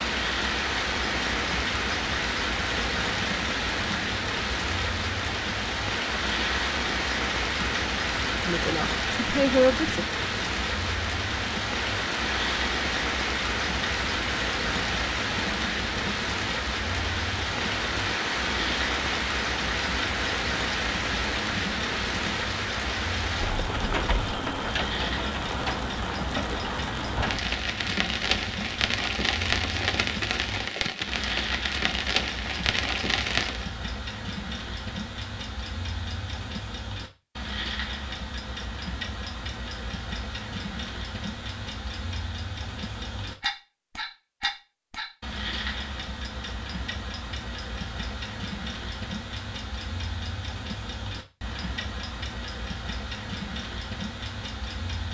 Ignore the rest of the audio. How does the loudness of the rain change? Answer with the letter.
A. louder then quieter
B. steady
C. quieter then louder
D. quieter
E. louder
B.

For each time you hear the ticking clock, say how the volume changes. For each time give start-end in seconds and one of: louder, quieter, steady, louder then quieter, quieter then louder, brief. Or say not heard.
0.0-55.0 steady.